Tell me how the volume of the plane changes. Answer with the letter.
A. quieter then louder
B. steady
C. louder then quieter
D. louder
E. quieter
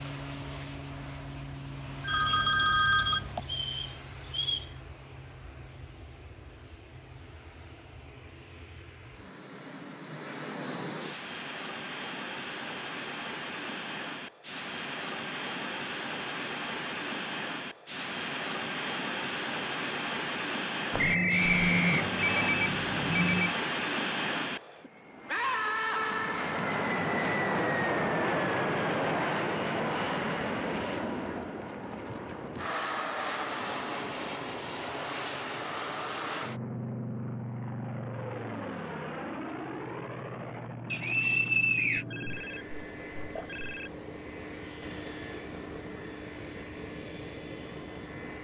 C.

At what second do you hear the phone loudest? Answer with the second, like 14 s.
3 s.